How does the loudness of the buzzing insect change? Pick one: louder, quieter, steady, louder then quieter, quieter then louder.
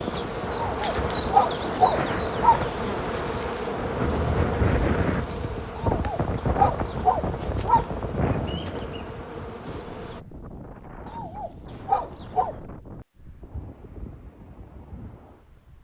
quieter.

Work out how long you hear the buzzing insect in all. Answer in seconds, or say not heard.
10 s.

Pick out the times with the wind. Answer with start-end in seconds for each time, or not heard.
0.0-15.8.